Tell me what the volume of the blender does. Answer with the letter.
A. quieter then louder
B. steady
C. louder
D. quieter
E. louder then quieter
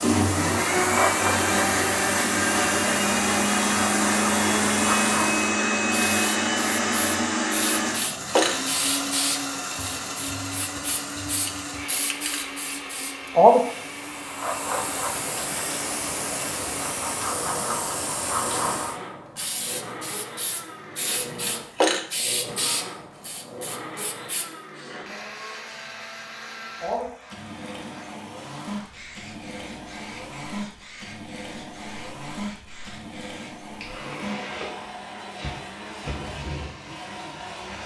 D.